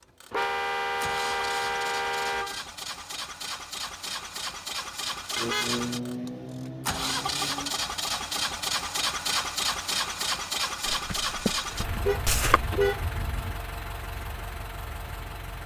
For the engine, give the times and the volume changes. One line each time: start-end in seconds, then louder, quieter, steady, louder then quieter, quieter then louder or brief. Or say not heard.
0.0-15.6 louder then quieter.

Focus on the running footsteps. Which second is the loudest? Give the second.
12 s.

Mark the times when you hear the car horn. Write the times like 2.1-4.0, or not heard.
0.3-2.6, 5.3-7.8, 11.8-13.6.